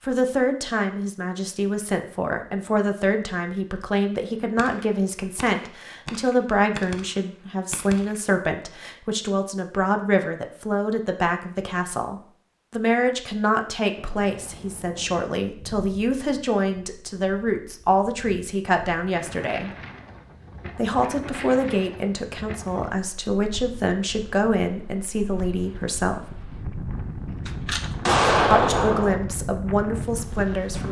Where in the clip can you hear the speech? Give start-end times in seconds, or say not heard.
0.0-19.7, 20.8-26.2, 28.5-30.8.